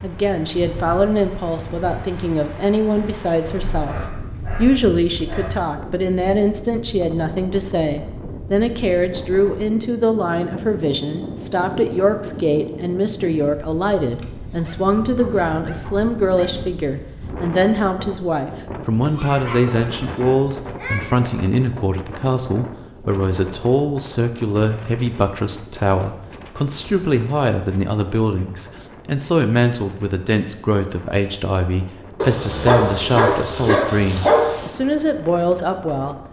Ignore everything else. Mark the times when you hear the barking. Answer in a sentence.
The barking can be heard from 3.7 to 5.6 s, from 14.6 to 16.6 s, from 19.0 to 21.0 s and from 32.2 to 34.6 s.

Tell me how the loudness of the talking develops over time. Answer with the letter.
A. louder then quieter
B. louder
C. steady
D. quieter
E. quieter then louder
C.